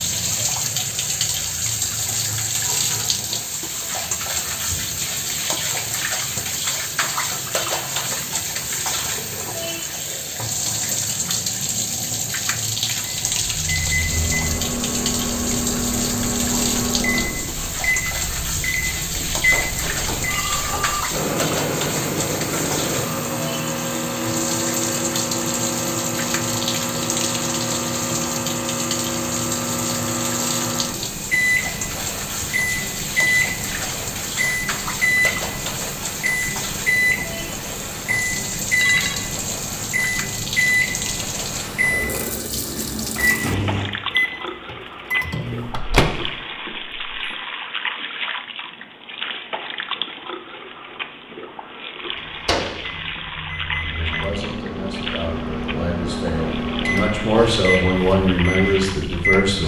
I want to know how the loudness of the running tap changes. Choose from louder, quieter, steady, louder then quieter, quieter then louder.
quieter.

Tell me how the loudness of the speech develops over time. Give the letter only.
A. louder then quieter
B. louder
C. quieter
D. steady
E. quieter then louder
B.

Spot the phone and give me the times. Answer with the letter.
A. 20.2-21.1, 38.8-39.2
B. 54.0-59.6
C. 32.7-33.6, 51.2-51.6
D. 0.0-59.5
A.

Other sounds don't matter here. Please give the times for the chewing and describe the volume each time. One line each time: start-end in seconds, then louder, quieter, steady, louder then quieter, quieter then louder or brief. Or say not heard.
not heard.